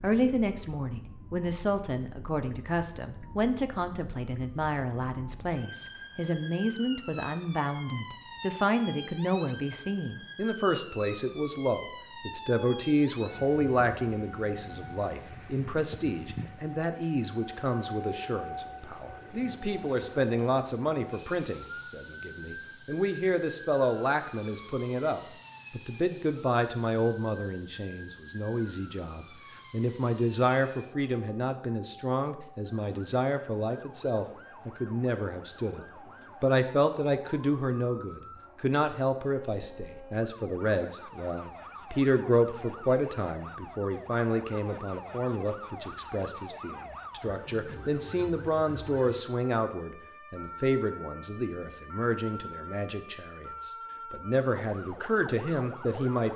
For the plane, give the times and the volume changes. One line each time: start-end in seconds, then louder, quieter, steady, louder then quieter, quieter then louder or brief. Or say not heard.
not heard.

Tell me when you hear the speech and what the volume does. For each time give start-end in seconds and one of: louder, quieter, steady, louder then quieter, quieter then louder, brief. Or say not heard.
0.0-56.3 steady.